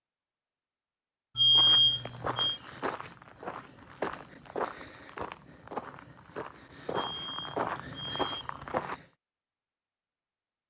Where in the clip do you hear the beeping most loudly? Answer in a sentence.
The volume of the beeping peaks at 2 seconds.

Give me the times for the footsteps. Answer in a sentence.
You can hear the footsteps from 1.5 to 9.1 s.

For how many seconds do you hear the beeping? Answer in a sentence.
The beeping can be heard for 3 seconds in total.